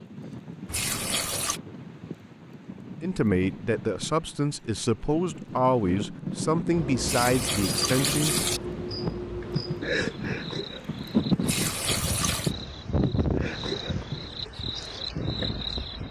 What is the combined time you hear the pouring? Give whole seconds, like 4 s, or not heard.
4 s.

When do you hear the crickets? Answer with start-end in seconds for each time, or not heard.
6.7-16.0.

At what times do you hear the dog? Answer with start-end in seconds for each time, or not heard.
not heard.